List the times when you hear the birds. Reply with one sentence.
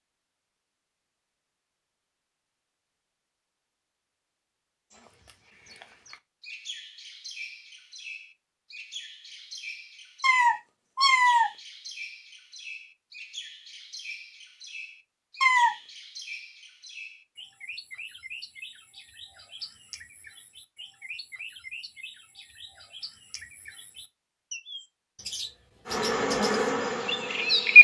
The birds can be heard from 4.9 to 27.8 s.